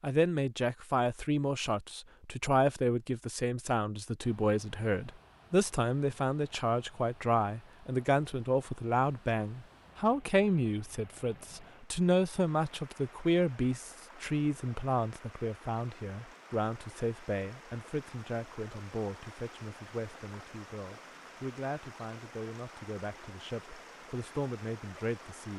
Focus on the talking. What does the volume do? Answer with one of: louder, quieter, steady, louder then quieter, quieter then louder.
quieter.